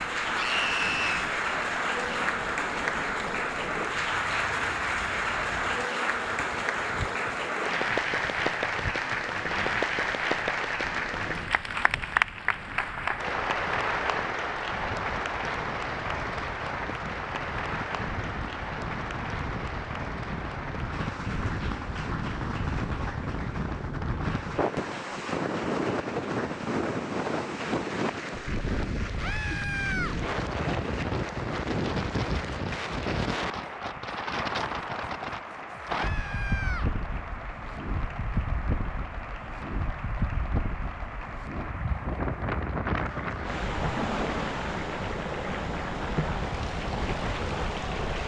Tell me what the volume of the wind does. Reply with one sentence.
The volume of the wind goes up.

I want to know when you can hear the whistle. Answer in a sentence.
The whistle can't be heard in this clip.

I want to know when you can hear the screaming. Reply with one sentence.
The screaming can be heard from 0.3 to 1.3 s, from 29.1 to 30.1 s and from 35.9 to 36.9 s.